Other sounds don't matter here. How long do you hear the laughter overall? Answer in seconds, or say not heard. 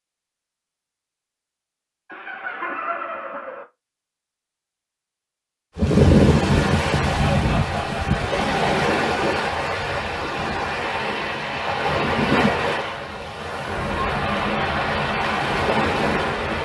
3 s.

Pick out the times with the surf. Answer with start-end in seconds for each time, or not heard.
5.8-16.6.